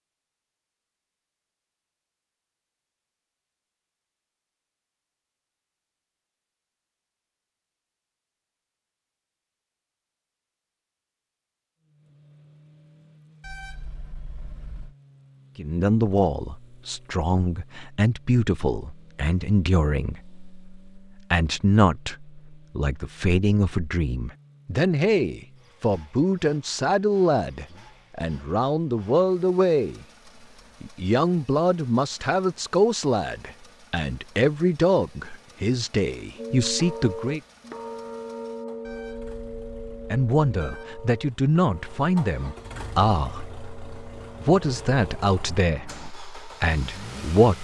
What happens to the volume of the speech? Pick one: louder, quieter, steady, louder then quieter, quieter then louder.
steady.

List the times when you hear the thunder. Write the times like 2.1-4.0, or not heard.
not heard.